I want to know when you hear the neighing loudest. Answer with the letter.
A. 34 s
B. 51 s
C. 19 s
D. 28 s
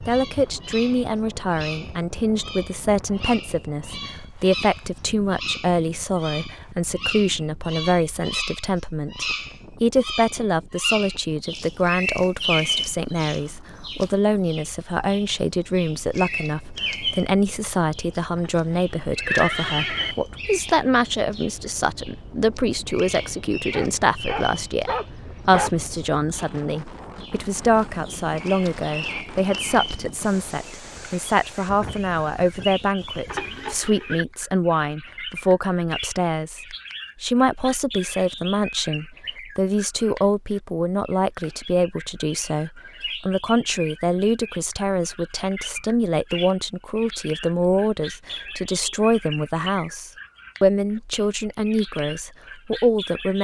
C.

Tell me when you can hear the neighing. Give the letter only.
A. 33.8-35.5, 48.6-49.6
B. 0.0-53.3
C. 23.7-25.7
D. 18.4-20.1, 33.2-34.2
D.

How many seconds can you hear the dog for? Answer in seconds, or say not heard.
2 s.